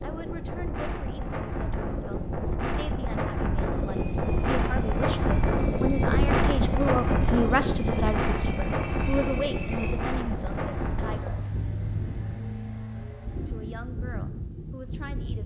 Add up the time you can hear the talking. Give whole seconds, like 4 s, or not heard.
13 s.